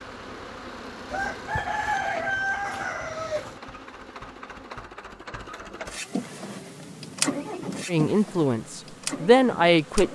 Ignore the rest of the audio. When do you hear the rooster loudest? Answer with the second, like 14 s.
2 s.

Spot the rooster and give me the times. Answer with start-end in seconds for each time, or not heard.
1.1-3.6.